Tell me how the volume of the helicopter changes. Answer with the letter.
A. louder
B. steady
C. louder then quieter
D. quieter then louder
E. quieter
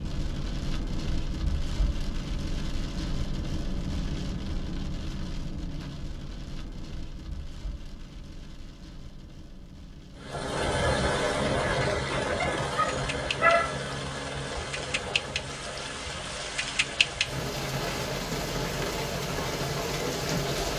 E.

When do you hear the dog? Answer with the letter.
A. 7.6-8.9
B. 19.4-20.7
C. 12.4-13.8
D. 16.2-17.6
C.